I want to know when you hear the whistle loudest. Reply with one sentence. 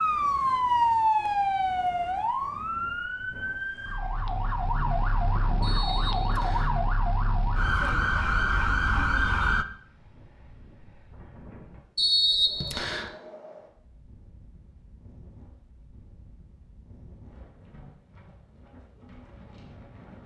The volume of the whistle peaks at 12 seconds.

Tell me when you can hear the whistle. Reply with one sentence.
You can hear the whistle from 5.6 to 6.8 s and from 11.9 to 13.1 s.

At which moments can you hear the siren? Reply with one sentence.
You can hear the siren from 0.0 to 9.7 s.